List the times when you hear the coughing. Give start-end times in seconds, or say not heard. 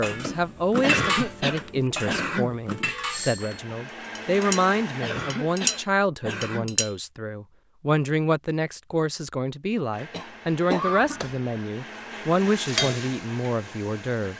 0.8-2.5, 5.0-6.8, 10.1-11.2.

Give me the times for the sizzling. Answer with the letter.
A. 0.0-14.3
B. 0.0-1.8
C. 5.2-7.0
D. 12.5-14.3
D.